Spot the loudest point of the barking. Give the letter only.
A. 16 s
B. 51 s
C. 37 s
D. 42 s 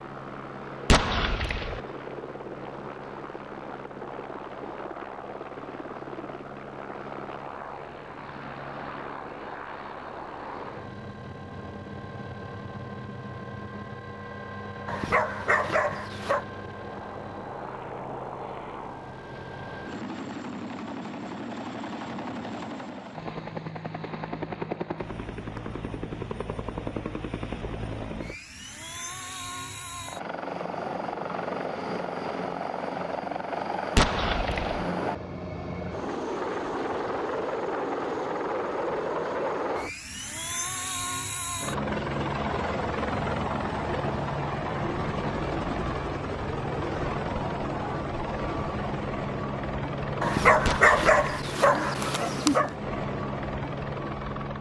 B.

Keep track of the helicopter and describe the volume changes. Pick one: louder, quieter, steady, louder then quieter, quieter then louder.
louder.